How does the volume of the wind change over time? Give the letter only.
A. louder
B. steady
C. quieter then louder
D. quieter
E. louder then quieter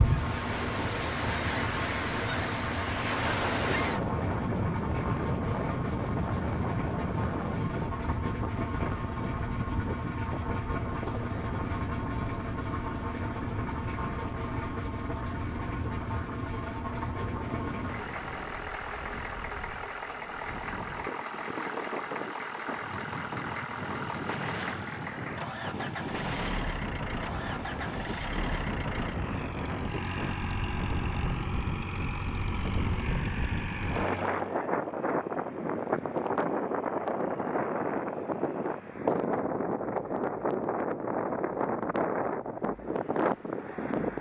C.